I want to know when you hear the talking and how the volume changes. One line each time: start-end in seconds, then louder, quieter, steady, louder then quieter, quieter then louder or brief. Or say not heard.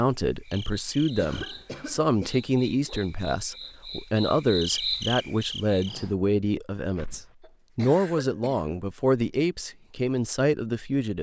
0.0-11.1 steady.